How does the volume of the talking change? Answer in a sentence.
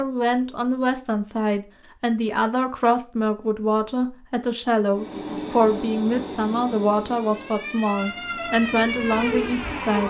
The loudness of the talking stays about the same.